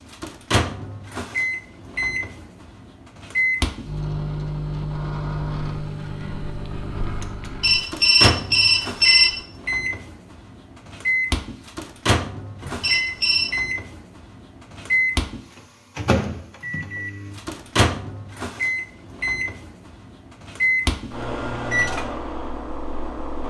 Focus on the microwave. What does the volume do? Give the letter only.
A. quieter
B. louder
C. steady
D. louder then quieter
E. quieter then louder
C.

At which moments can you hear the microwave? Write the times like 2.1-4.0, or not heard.
0.1-23.4.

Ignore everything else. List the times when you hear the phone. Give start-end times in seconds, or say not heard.
7.6-9.4, 12.8-13.5.